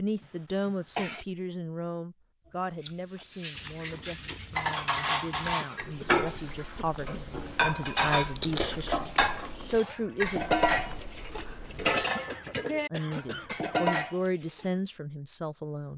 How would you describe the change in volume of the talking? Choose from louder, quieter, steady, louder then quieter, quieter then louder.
quieter then louder.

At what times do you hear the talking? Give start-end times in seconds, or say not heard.
0.0-10.4, 12.9-15.9.